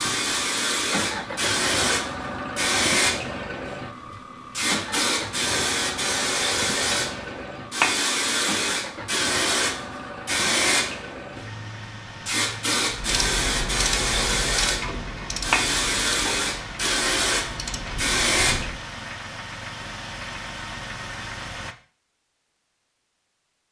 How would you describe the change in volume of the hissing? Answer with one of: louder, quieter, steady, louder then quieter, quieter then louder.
steady.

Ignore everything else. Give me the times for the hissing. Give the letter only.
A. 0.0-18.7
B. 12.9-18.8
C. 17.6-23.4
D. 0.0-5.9
A.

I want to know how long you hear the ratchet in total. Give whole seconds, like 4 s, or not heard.
6 s.